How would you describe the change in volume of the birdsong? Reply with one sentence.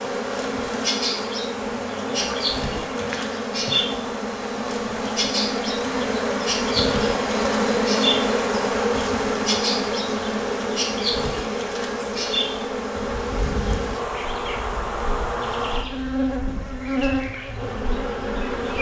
The volume of the birdsong goes down.